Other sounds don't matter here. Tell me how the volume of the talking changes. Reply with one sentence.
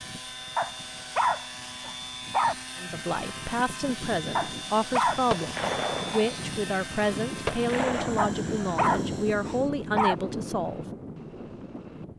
The volume of the talking stays about the same.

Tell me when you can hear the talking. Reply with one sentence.
The talking can be heard from 2.8 to 10.8 s.